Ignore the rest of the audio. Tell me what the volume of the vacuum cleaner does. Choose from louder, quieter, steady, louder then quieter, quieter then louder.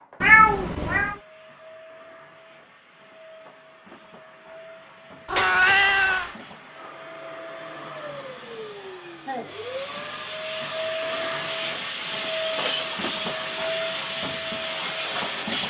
louder.